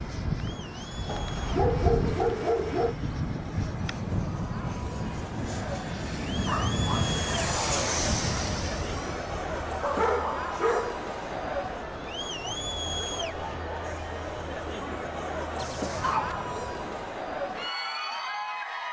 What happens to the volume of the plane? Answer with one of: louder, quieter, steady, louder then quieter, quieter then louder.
quieter.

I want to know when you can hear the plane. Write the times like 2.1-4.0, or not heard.
0.0-16.9.